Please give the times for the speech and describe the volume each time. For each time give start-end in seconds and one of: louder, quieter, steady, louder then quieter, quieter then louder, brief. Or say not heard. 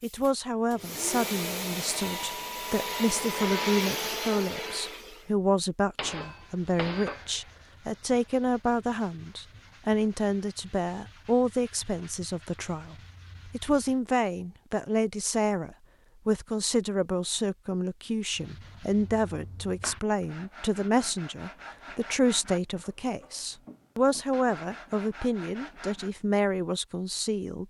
0.0-27.6 steady.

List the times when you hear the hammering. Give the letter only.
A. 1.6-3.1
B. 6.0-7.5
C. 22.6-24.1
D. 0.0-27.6
B.